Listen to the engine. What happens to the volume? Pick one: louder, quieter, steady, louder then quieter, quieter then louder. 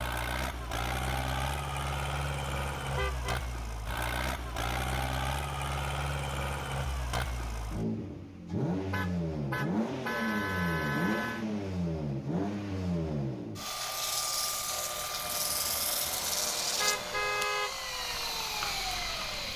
steady.